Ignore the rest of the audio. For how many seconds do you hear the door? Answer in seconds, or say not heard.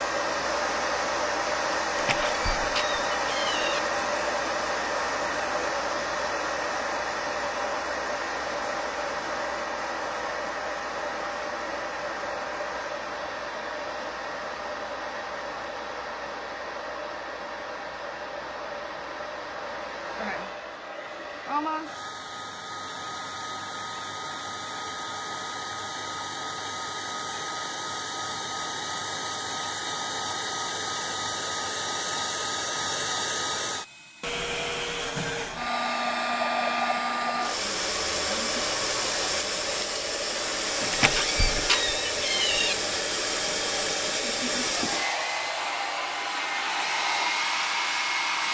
4 s.